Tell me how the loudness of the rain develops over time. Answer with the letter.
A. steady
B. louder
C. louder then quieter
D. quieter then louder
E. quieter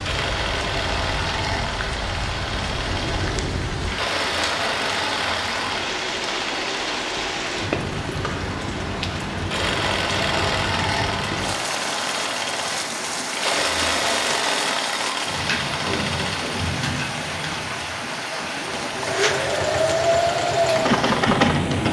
A.